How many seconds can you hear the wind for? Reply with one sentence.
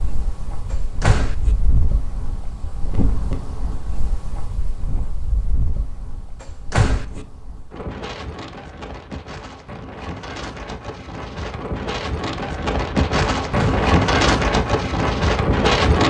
The wind can be heard for 16 seconds in total.